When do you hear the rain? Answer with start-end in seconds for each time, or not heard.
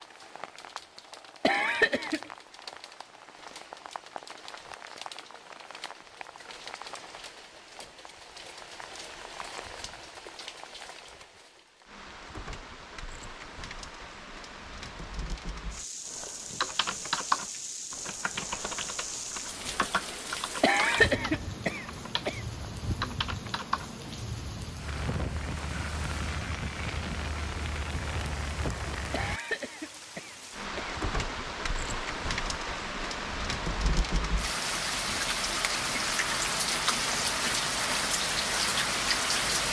0.0-39.6.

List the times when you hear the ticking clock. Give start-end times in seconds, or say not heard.
not heard.